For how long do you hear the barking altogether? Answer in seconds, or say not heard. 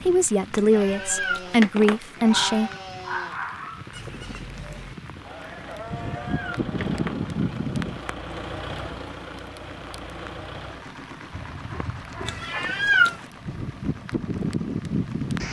3 s.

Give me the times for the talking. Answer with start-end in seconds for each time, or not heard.
0.1-2.7.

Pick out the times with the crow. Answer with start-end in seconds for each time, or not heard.
not heard.